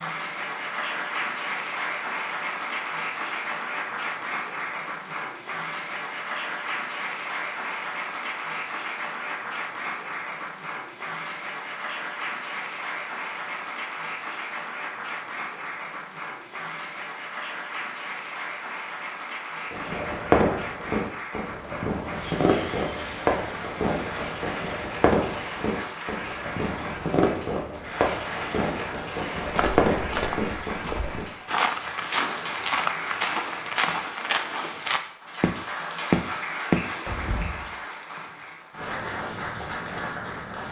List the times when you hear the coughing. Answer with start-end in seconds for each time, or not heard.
not heard.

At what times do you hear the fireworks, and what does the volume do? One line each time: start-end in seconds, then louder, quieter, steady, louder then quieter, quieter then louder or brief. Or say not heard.
19.7-31.3 steady.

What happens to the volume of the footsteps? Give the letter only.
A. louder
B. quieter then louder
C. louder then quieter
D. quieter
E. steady
A.